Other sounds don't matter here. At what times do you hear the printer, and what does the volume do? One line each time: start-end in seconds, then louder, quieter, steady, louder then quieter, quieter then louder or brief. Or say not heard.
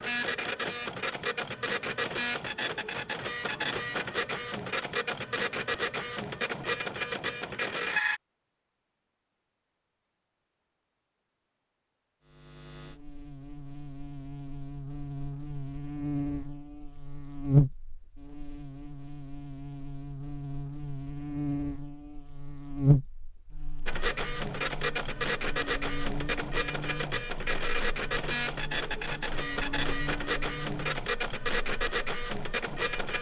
0.0-8.2 steady
23.9-33.1 steady.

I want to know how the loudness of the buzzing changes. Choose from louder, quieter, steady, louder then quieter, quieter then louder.
louder then quieter.